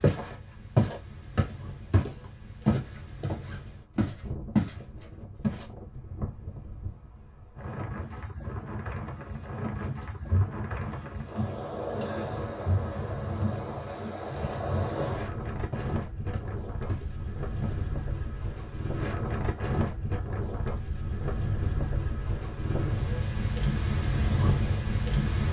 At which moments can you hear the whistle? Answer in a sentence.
You can't hear the whistle here.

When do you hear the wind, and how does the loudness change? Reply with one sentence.
You can hear the wind from 0.1 to 25.4 s, getting louder.